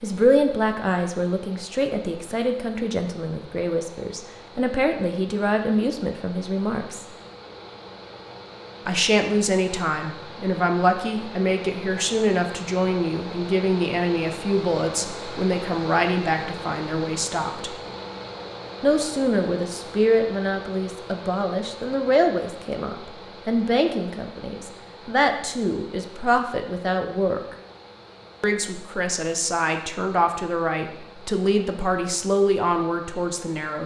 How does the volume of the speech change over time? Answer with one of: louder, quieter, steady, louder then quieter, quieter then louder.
steady.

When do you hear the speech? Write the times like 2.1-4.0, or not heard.
0.0-7.0, 8.8-17.7, 18.8-27.6, 28.4-33.8.